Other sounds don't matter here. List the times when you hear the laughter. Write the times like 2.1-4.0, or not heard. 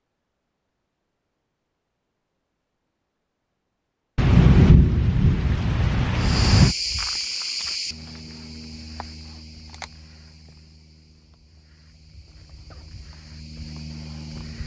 not heard.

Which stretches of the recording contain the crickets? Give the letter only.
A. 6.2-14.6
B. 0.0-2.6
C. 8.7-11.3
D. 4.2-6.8
A.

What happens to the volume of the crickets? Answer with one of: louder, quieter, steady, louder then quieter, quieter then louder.
quieter then louder.